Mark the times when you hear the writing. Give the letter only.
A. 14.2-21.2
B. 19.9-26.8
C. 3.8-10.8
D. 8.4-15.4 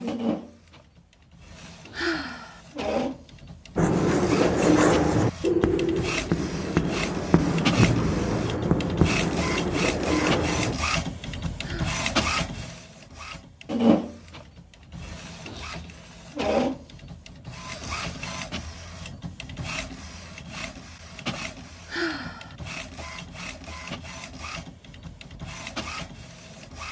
C.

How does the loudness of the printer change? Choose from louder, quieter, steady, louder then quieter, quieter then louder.
louder then quieter.